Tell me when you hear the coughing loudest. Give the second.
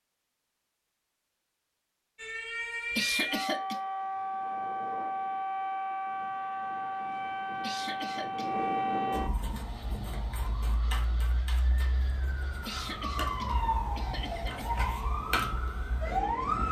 3 s.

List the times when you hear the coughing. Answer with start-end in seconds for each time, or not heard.
3.0-3.8, 7.6-8.6, 12.7-14.8.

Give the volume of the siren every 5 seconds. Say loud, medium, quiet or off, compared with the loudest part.
loud, loud, medium, loud.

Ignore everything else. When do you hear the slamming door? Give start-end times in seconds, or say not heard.
not heard.